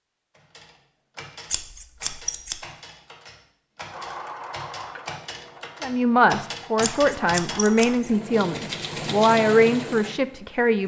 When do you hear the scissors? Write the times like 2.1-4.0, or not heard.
1.5-2.6, 6.8-8.1.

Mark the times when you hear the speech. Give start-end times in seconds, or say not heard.
5.8-10.8.